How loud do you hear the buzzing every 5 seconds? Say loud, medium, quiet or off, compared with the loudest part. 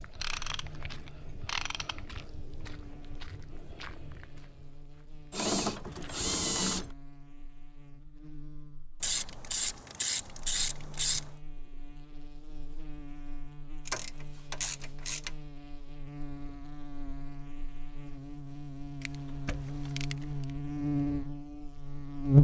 quiet, quiet, quiet, quiet, loud.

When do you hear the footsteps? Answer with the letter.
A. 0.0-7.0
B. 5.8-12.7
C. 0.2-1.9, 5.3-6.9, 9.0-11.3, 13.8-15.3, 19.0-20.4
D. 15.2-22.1
A.